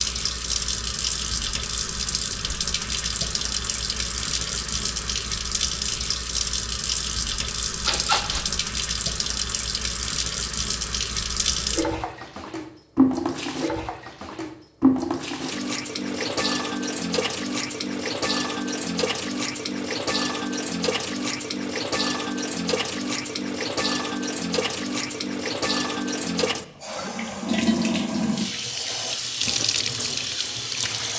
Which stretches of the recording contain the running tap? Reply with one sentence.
The running tap can be heard from 0.0 to 31.1 s.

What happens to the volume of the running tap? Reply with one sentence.
The loudness of the running tap stays about the same.